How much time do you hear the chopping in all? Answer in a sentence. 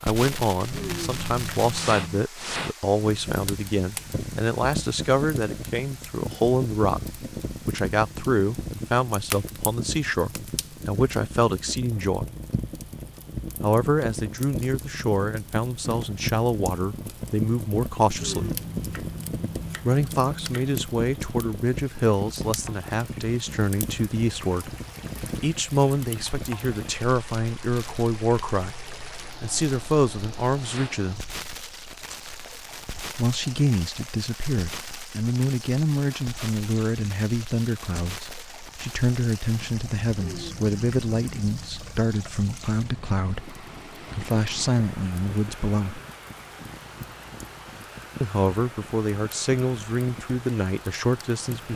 You can hear the chopping for 6 seconds altogether.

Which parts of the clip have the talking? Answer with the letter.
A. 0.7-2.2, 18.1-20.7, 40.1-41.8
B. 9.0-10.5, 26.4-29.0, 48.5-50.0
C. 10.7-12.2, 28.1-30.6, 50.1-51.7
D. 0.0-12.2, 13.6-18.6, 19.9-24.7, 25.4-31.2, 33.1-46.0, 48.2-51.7
D.